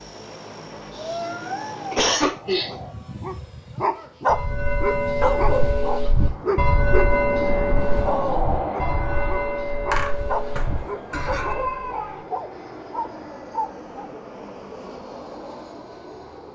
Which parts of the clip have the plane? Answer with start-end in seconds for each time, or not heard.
0.0-16.5.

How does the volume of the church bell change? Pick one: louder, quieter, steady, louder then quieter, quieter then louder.
quieter.